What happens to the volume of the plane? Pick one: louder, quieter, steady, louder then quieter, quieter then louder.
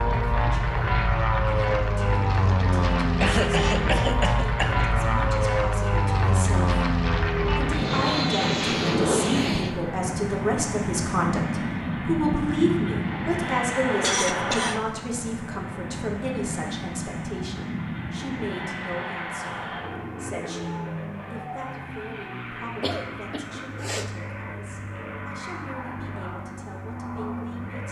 quieter.